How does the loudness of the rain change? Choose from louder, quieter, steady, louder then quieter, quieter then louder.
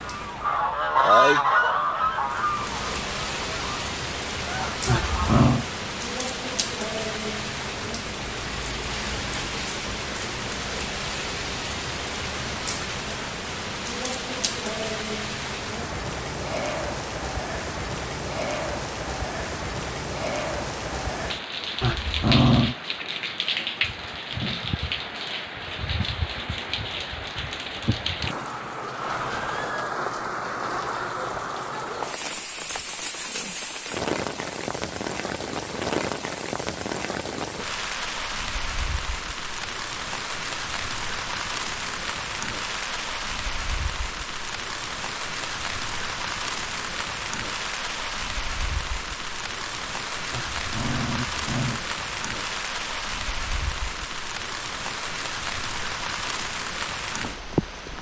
steady.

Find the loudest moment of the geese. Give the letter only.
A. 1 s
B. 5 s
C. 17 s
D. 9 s
A.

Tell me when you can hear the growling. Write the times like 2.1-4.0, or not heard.
4.8-5.7, 21.8-22.8, 50.3-51.9.